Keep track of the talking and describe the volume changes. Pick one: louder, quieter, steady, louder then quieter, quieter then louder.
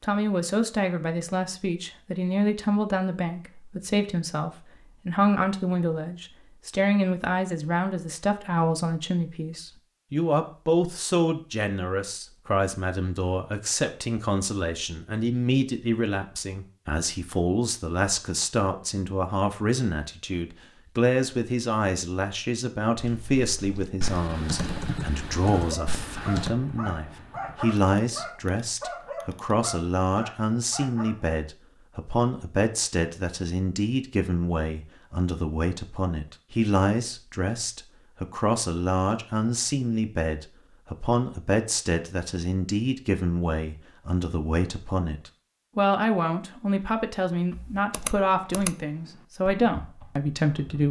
steady.